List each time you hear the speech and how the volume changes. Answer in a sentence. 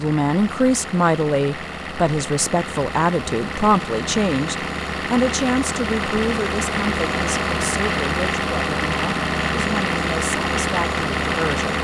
You can hear the speech from 0.0 to 11.7 s, getting quieter.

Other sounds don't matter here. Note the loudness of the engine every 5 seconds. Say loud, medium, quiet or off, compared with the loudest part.
medium, loud, loud.